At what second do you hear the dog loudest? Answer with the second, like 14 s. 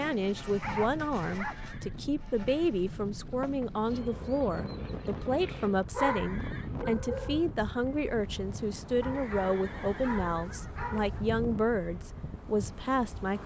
6 s.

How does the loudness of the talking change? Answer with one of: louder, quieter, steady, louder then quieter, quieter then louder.
steady.